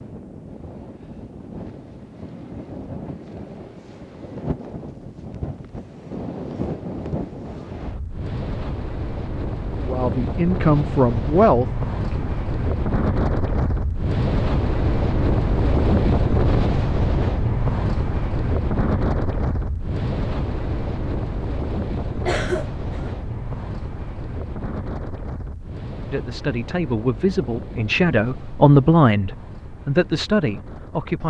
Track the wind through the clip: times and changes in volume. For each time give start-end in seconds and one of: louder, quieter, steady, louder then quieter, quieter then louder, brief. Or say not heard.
0.0-31.2 louder then quieter.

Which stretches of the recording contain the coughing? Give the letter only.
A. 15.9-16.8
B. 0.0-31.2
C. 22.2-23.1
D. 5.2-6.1
C.